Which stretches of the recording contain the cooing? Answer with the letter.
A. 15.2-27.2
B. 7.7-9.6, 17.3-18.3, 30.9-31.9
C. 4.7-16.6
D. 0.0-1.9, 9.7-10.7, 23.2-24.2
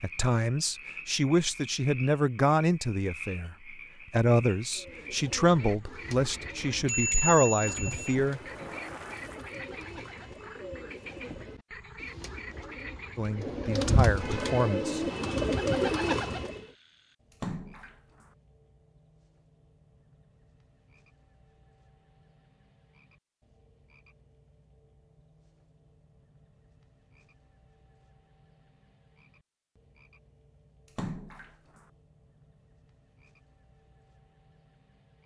C.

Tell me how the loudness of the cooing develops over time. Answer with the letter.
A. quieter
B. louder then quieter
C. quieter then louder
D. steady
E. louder
E.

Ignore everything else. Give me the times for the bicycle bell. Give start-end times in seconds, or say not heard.
6.8-8.1.